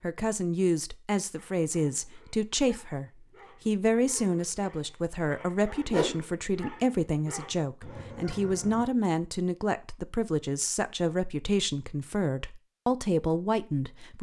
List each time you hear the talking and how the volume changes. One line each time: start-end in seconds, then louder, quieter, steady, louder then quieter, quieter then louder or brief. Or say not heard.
0.0-14.1 steady.